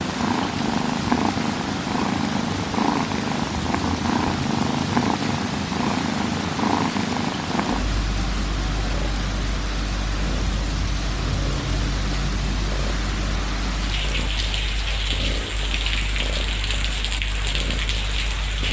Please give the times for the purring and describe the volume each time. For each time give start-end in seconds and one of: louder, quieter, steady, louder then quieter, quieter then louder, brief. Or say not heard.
0.0-18.6 quieter.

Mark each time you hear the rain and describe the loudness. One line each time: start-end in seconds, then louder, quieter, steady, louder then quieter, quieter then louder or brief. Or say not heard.
0.0-18.6 steady.